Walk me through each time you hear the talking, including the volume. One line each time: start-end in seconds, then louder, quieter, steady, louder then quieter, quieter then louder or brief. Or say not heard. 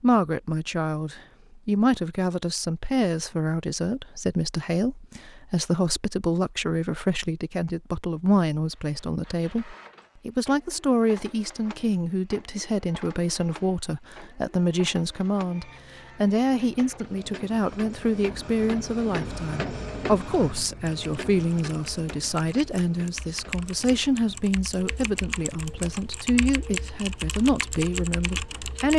0.0-28.9 steady.